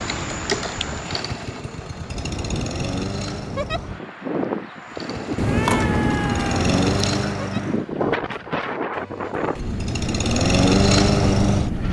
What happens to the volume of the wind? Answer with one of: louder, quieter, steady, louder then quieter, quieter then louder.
louder.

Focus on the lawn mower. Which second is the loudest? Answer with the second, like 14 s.
11 s.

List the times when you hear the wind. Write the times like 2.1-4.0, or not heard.
0.0-11.8.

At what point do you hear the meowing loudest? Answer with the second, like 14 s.
6 s.